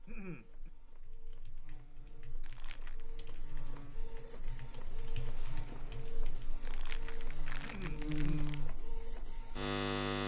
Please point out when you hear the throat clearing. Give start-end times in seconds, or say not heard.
0.1-0.7, 7.6-8.6.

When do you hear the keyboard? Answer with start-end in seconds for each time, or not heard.
1.0-6.5.